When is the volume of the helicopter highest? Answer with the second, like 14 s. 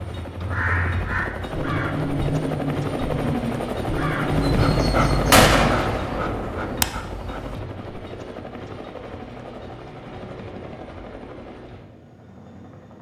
5 s.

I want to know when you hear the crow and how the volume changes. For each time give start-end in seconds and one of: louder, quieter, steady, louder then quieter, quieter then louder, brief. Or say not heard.
0.0-5.8 steady.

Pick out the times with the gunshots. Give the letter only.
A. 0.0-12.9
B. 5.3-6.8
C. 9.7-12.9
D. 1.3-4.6
B.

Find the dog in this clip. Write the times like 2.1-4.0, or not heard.
4.3-7.6.